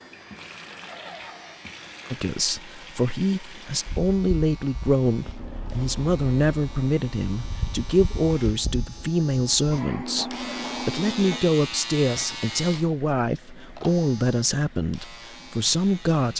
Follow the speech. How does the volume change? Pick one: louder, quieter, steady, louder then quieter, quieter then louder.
steady.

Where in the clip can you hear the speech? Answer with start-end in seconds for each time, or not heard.
2.1-16.3.